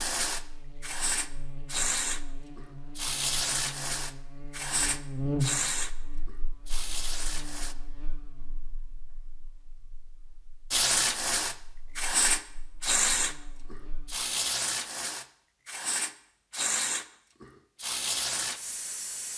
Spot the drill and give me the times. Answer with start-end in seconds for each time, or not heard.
not heard.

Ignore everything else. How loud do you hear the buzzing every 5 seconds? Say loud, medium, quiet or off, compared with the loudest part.
medium, loud, quiet, off.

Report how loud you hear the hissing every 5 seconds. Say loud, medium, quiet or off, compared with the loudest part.
loud, medium, loud, medium.